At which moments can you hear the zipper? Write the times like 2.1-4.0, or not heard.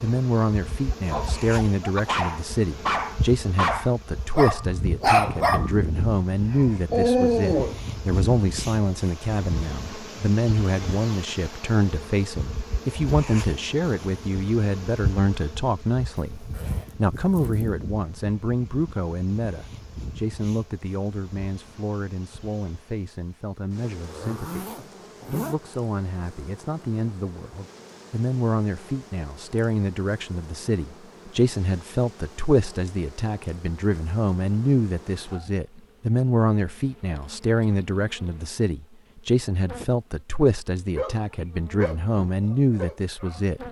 16.4-17.6, 24.0-25.6.